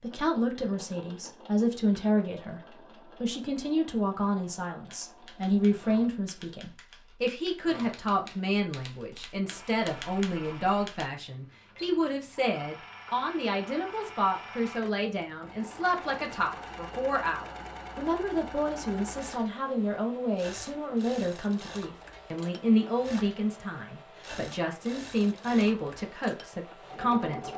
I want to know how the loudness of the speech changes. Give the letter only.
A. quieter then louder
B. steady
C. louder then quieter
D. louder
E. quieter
B.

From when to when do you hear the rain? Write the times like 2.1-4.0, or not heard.
not heard.